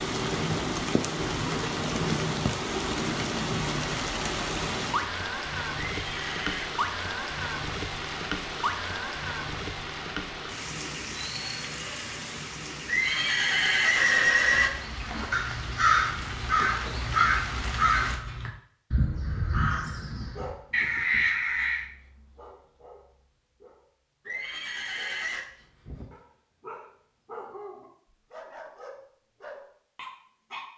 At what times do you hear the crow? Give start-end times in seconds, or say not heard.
15.0-21.9.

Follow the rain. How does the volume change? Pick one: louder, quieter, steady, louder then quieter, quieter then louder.
quieter.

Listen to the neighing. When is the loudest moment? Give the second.
14 s.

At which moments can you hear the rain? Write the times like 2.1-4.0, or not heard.
0.0-18.2.